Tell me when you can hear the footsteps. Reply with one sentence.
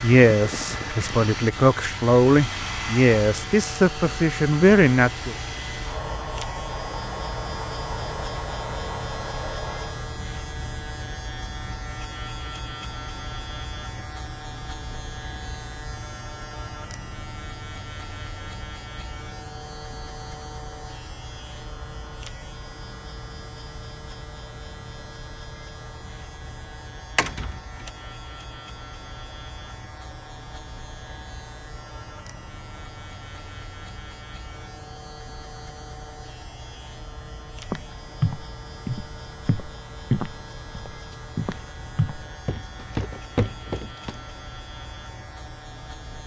The footsteps can be heard from 37.6 to 44.2 s.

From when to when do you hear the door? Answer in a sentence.
The door can be heard from 27.1 to 27.9 s.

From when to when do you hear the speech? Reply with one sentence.
You can hear the speech from 0.0 to 5.3 s.